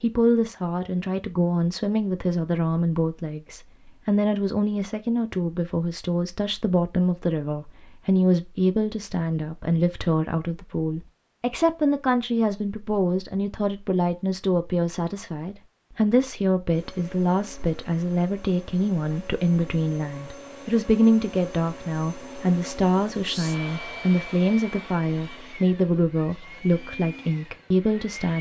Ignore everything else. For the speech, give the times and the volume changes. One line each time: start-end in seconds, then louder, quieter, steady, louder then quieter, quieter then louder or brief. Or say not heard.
0.0-28.3 steady.